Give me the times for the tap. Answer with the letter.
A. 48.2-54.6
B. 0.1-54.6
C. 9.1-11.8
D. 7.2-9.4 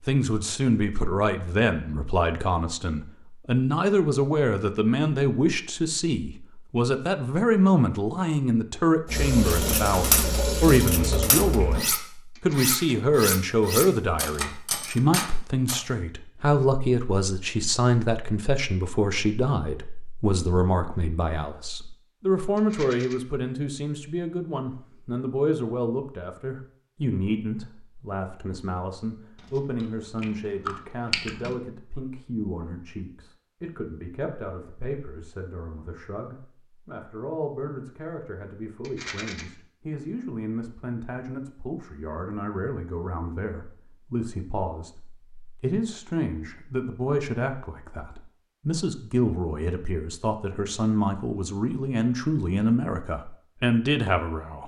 C.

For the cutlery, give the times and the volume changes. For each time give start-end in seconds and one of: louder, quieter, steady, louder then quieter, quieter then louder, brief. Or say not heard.
9.4-15.8 steady.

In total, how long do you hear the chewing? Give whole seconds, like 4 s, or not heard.
2 s.